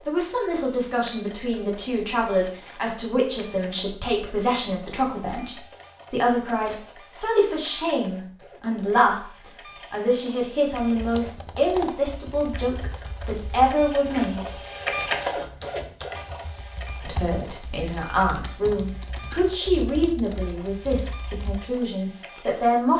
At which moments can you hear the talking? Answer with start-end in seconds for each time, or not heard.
0.1-14.5, 17.0-22.9.